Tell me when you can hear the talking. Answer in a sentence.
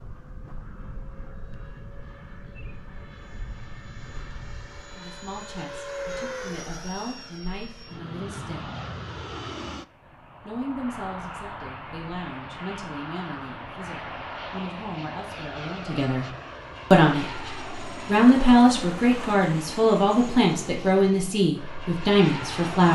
You can hear the talking from 4.9 to 8.7 s, from 10.4 to 16.3 s and from 16.9 to 22.8 s.